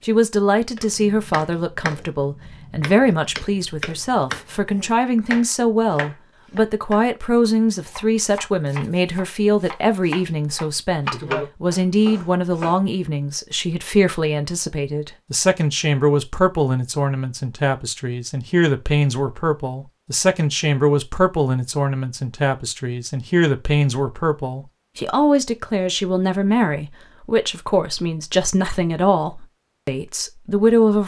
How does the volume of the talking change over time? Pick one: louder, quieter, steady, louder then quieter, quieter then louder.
steady.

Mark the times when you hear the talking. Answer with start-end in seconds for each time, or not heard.
0.1-31.0.